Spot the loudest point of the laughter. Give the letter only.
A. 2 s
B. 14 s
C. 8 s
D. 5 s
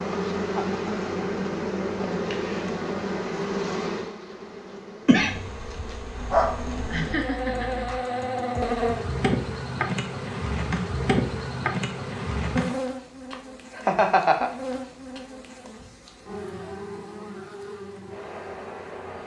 B.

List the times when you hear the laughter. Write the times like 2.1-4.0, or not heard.
0.6-1.5, 6.9-7.8, 13.3-14.5.